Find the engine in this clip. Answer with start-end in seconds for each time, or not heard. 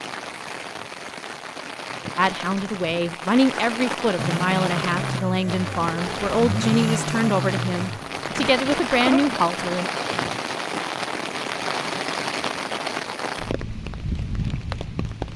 4.2-9.4.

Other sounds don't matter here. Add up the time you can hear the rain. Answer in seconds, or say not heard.
15 s.